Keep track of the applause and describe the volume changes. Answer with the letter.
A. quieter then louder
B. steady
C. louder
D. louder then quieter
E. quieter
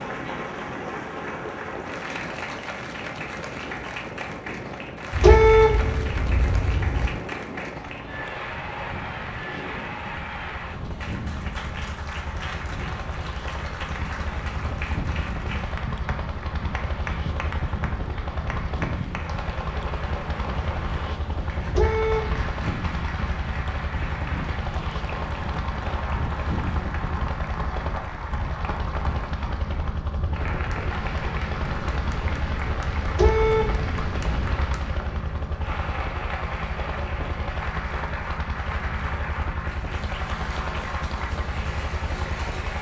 B.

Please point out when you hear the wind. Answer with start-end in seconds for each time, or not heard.
0.0-35.0.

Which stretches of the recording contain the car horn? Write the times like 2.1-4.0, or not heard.
5.1-7.1, 21.6-22.4, 33.0-34.8.